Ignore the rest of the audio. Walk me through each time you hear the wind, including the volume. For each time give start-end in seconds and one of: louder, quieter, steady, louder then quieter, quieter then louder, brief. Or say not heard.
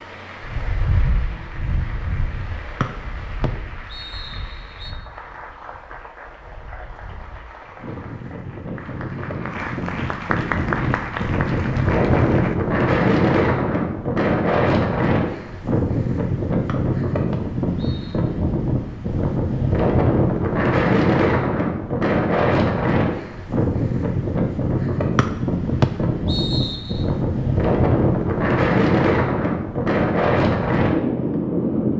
0.0-31.9 louder.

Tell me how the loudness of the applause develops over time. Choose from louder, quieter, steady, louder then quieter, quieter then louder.
louder.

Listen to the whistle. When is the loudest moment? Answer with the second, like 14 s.
26 s.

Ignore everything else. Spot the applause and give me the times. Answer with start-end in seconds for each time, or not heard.
0.0-12.6.